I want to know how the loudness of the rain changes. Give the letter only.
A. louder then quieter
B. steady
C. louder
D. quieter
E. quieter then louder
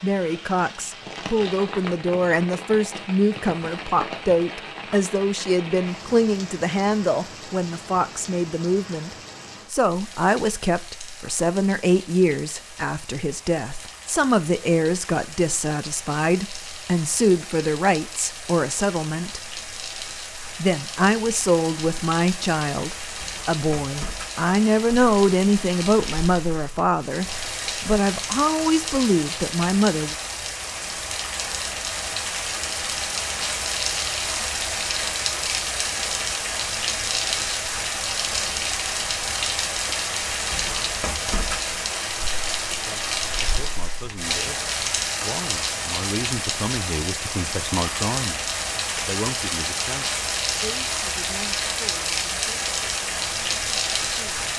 C.